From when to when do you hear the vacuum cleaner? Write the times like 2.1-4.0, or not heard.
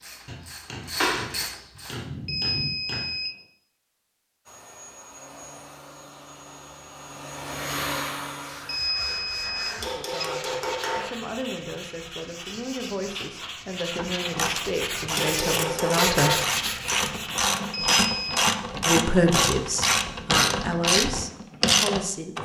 4.5-8.8.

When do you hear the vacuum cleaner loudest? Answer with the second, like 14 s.
8 s.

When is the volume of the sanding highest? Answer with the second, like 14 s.
16 s.